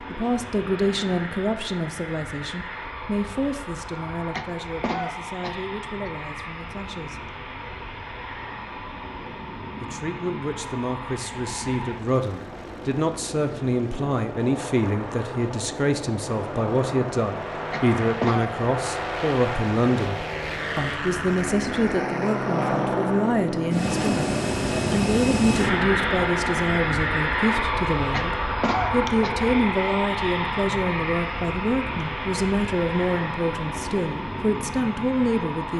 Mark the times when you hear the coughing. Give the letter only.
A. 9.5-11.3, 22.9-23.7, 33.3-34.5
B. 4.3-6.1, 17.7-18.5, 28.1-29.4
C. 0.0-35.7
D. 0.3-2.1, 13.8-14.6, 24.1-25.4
B.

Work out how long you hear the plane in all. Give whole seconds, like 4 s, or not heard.
36 s.